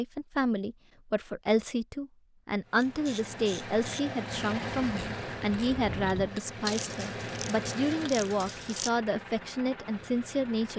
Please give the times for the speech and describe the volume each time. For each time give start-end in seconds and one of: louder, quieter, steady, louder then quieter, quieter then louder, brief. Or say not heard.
0.0-10.7 steady.